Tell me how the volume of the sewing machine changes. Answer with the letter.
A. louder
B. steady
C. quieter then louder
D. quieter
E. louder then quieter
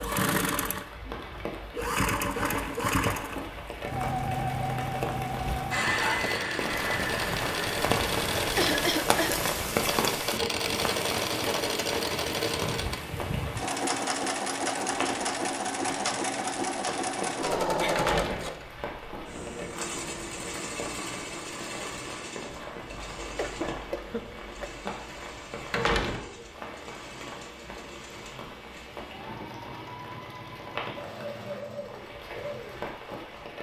D.